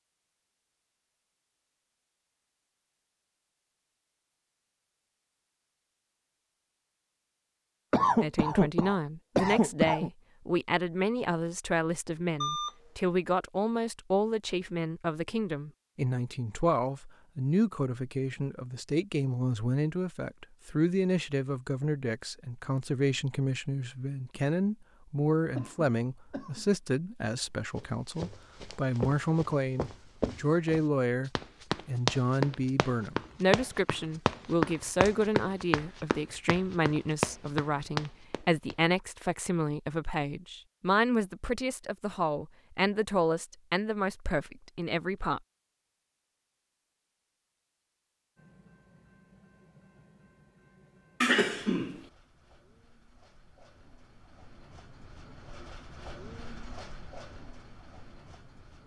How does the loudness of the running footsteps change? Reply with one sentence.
The volume of the running footsteps goes up.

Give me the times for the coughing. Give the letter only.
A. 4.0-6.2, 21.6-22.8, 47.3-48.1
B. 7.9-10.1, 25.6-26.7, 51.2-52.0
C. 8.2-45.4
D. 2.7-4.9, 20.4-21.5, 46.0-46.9
B.